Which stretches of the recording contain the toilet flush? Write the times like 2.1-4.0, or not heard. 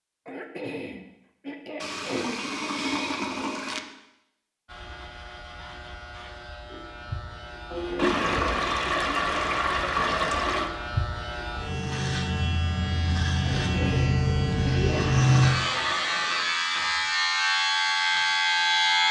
1.8-3.8, 8.0-10.7, 14.9-16.5.